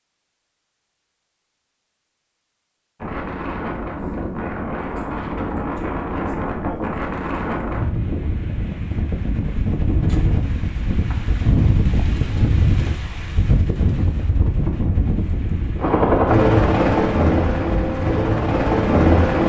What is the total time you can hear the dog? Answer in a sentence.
The dog can't be heard in this clip.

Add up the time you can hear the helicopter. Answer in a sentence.
The helicopter can be heard for 4 seconds in total.